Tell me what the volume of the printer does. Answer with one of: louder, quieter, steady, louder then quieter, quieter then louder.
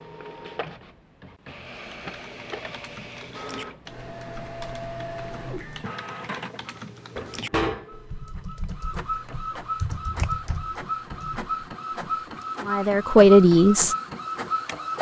louder.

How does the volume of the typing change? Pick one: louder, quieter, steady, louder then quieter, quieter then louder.
louder.